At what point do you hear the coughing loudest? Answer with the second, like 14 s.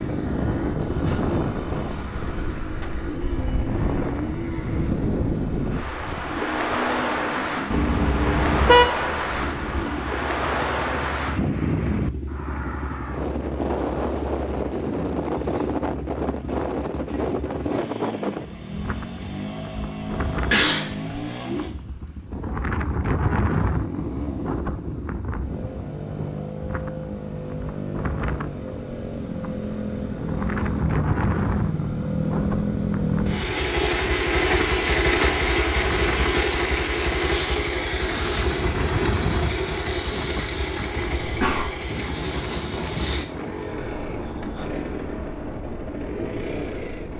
21 s.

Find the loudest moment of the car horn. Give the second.
9 s.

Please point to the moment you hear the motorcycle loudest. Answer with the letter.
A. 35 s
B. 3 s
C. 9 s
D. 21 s
A.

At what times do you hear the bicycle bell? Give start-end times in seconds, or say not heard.
not heard.